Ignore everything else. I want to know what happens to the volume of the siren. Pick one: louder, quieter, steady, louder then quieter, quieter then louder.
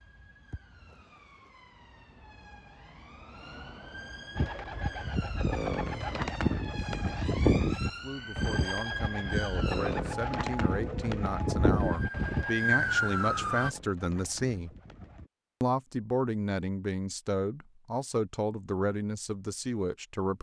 louder.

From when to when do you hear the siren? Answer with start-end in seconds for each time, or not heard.
0.0-13.7.